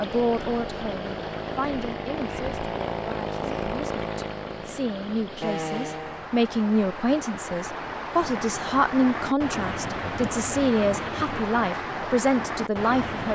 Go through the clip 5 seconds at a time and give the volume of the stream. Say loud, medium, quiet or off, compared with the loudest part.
medium, loud, loud.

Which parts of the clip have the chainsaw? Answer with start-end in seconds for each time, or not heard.
0.0-6.3.